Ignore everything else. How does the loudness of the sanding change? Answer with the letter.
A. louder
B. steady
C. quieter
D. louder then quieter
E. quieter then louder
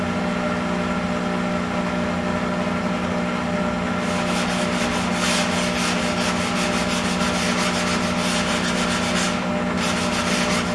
B.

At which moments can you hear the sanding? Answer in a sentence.
You can hear the sanding from 3.9 to 10.7 s.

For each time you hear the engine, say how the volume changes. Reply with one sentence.
The engine can be heard from 0.0 to 10.7 s, at a steady volume.